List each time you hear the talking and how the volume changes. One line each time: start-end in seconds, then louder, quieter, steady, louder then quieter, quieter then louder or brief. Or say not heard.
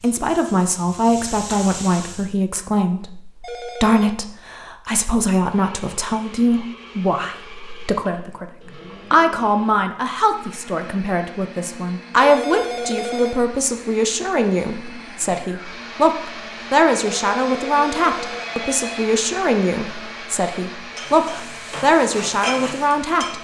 0.0-23.3 steady.